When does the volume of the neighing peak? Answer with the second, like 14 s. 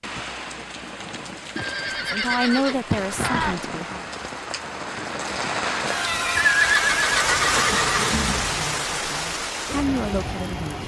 7 s.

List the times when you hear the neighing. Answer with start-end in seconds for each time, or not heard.
1.6-3.5, 6.0-8.5.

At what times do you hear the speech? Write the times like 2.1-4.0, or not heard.
2.0-4.0, 8.6-10.8.